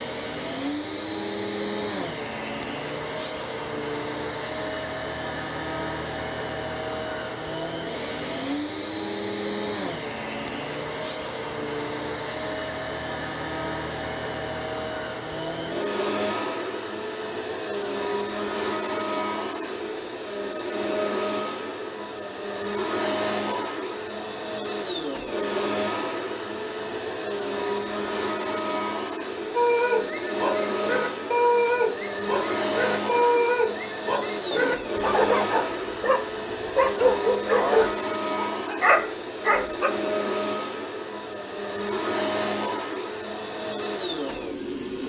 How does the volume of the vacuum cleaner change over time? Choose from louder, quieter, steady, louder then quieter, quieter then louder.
steady.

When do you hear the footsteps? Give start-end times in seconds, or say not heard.
not heard.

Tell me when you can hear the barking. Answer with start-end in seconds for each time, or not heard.
29.6-39.9.